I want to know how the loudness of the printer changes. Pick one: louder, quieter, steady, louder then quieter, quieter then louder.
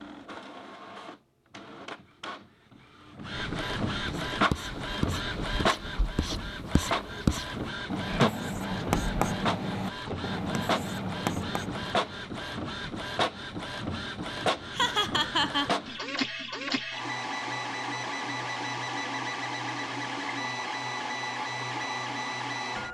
steady.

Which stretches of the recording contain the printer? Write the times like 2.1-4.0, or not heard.
0.0-22.8.